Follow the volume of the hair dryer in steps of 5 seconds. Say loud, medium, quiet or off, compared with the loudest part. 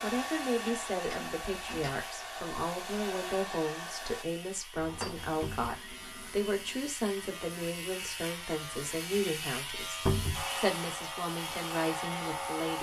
loud, off, loud.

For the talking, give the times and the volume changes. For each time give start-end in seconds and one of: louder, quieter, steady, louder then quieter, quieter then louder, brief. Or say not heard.
0.0-12.7 steady.